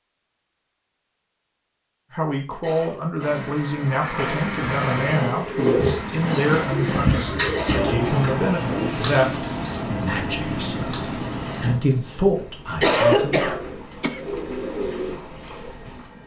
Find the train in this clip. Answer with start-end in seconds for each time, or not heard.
3.2-16.2.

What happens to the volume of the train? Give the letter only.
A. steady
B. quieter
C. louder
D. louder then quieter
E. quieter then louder
B.